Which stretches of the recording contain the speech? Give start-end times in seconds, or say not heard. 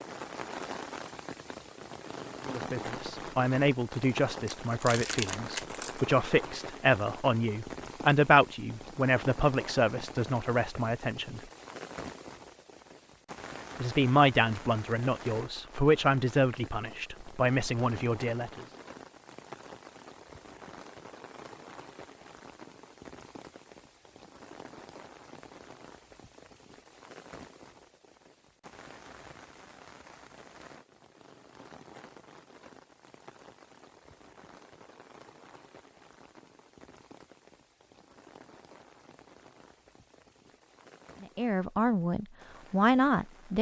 2.5-11.4, 13.8-18.6, 41.2-43.5.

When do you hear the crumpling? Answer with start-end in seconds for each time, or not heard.
4.5-6.0.